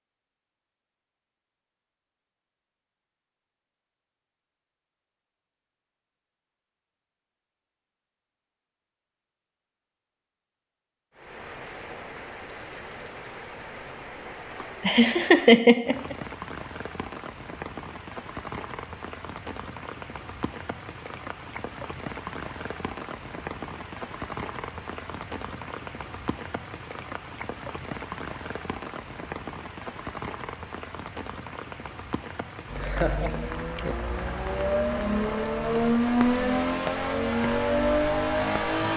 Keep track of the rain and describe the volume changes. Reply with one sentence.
The loudness of the rain stays about the same.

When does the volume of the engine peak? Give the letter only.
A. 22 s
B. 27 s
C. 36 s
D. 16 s
C.